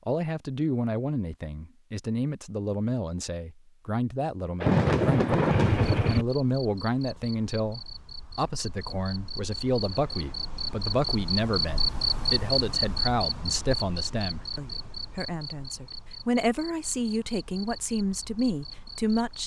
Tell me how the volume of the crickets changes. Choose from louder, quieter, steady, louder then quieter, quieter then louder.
louder then quieter.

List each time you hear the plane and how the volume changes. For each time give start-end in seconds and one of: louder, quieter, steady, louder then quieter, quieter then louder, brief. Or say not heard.
not heard.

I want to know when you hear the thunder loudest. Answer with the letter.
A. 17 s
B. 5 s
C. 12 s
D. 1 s
B.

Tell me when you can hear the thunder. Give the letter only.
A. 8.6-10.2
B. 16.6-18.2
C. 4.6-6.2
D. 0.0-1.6
C.